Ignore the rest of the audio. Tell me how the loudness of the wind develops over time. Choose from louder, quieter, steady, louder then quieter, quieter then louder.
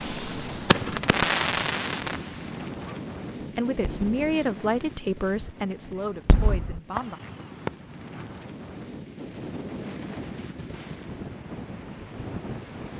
quieter then louder.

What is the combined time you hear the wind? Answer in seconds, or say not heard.
13 s.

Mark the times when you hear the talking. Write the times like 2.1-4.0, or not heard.
3.5-7.2.